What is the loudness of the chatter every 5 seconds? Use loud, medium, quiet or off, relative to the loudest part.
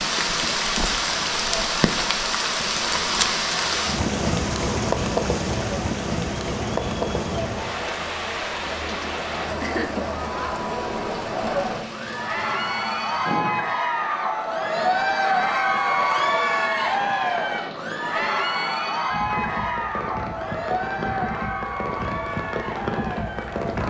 quiet, medium, loud, loud, medium.